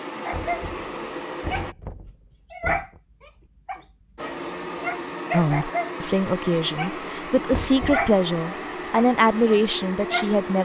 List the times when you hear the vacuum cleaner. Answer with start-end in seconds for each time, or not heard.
0.0-1.8, 4.2-10.6.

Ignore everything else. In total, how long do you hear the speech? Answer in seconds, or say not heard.
5 s.